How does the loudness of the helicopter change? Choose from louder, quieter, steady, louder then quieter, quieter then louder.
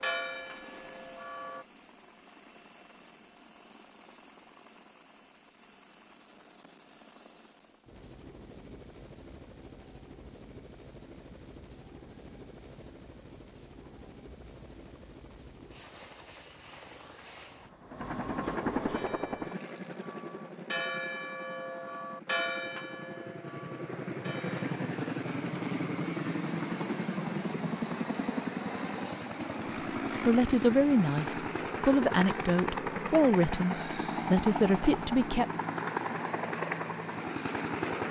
louder.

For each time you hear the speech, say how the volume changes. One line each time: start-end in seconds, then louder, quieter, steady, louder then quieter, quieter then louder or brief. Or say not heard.
30.2-35.5 steady.